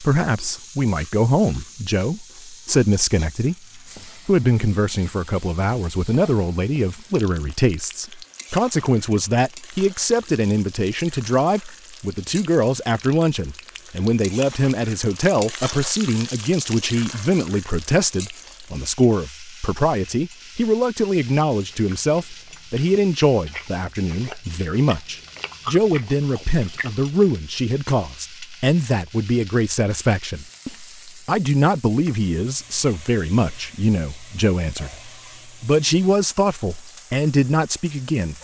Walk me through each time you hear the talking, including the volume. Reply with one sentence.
You can hear the talking from 0.0 to 38.3 s, at a steady volume.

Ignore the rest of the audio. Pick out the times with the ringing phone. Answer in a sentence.
The ringing phone can't be heard in this clip.